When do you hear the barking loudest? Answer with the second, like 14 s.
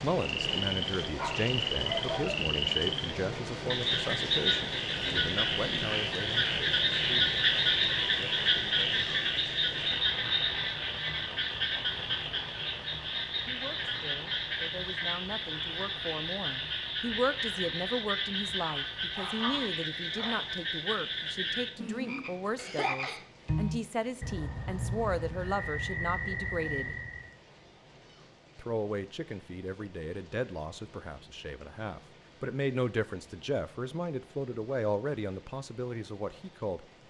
2 s.